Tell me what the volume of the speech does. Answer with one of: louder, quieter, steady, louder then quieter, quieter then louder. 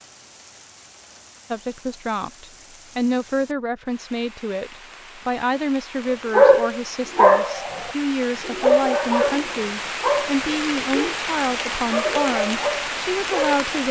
steady.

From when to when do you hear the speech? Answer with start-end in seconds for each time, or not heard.
1.5-13.8.